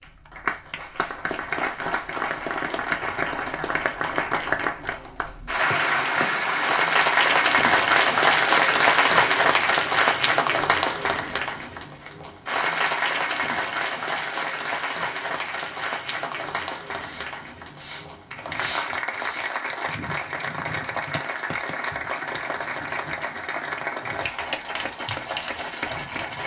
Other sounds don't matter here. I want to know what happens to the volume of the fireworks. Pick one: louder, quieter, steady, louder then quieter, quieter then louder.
louder then quieter.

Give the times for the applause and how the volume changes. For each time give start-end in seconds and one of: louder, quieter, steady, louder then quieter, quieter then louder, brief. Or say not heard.
0.0-26.4 louder then quieter.